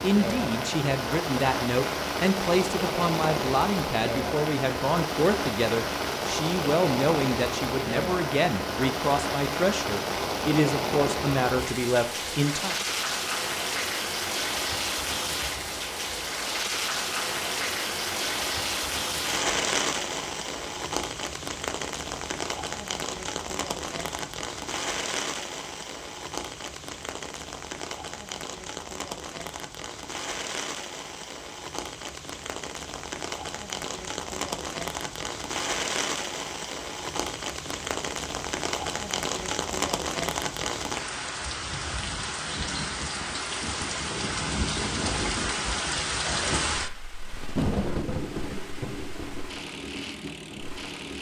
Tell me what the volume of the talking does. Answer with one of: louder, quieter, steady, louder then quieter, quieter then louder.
steady.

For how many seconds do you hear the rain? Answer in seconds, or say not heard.
51 s.